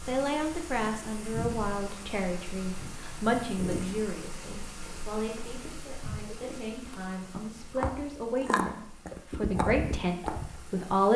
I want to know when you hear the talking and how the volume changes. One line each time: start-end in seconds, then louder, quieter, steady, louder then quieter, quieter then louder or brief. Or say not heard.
0.1-11.1 quieter then louder.